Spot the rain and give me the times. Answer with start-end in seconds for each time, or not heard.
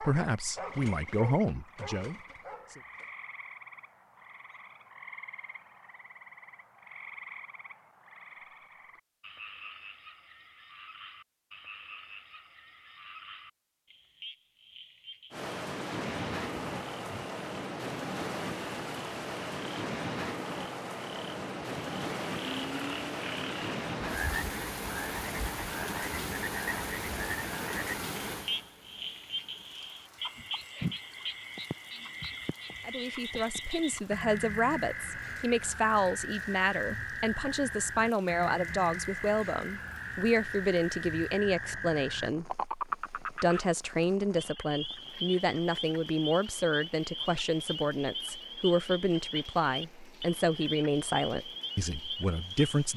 15.3-52.9.